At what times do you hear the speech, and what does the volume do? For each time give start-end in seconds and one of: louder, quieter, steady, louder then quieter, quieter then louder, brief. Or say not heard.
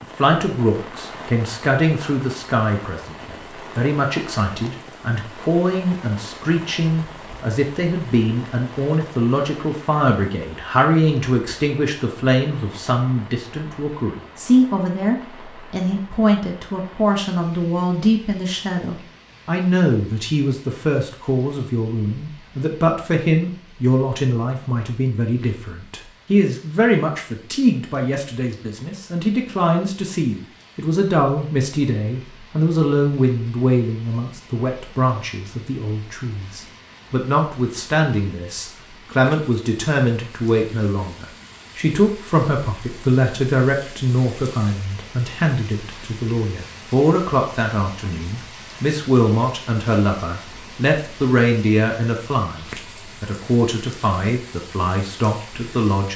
0.0-56.1 steady.